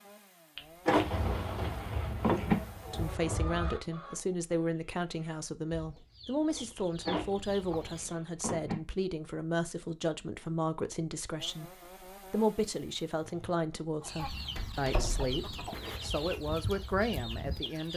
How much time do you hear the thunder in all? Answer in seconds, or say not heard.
3 s.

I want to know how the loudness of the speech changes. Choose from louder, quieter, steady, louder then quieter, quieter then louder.
steady.